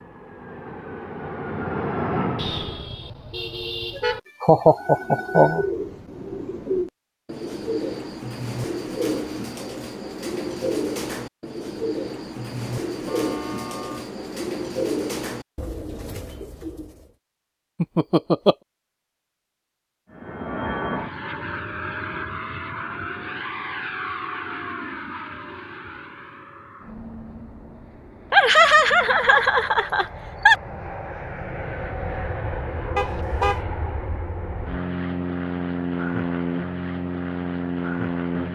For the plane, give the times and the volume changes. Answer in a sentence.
You can hear the plane briefly from 0.0 to 2.9 s; and from 20.1 to 38.5 s, getting quieter then louder.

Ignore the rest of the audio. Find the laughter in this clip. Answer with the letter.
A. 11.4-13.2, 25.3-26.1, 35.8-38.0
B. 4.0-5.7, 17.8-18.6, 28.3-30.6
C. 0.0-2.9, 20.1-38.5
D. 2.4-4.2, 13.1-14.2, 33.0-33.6
B.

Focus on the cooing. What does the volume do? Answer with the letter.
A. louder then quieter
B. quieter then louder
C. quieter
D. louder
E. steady
E.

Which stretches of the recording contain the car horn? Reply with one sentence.
You can hear the car horn from 2.4 to 4.2 s, from 13.1 to 14.2 s and from 33.0 to 33.6 s.